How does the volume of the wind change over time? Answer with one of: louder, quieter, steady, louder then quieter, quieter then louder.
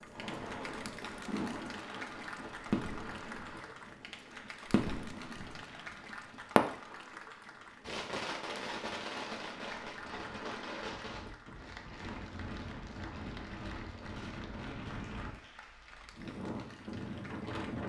quieter then louder.